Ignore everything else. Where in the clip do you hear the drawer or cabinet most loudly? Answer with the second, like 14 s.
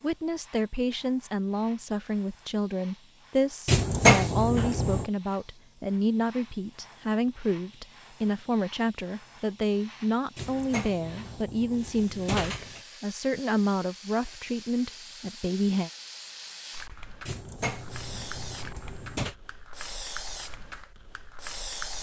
4 s.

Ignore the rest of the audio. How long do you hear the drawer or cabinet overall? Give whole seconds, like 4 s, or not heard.
6 s.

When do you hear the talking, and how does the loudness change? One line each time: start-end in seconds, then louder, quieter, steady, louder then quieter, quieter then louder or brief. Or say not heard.
0.0-15.9 steady.